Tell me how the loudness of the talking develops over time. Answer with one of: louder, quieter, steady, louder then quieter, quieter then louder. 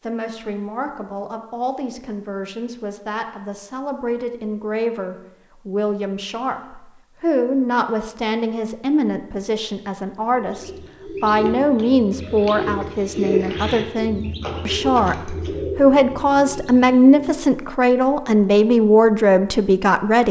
louder.